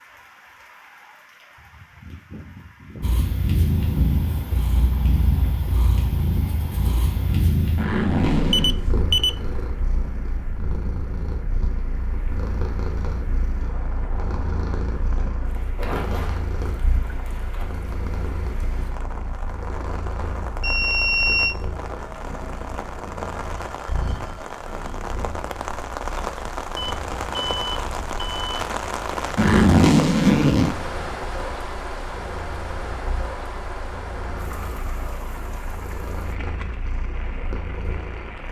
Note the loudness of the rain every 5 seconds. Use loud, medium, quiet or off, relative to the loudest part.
quiet, quiet, medium, medium, medium, loud, loud, medium.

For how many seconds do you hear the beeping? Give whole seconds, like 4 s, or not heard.
4 s.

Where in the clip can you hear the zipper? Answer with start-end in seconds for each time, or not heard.
7.8-8.8, 15.8-17.6, 29.4-30.8.